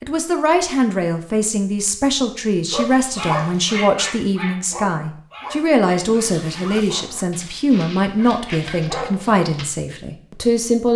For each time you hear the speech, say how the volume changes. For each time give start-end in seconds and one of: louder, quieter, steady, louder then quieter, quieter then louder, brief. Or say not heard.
0.0-10.9 steady.